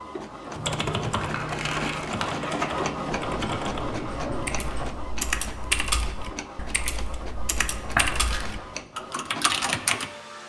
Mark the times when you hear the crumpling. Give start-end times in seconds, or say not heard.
1.0-2.8, 7.9-8.6.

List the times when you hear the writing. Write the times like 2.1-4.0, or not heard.
3.1-4.9.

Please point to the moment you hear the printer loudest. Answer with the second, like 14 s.
3 s.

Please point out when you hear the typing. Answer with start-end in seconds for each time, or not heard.
0.6-10.1.